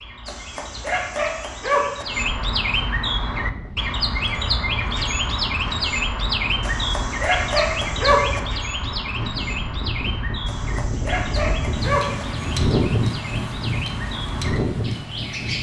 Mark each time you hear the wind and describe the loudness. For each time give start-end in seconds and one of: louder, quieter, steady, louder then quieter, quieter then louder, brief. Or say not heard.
3.2-15.5 louder.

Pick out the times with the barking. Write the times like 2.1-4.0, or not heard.
0.2-2.0, 6.6-8.4, 10.4-12.2.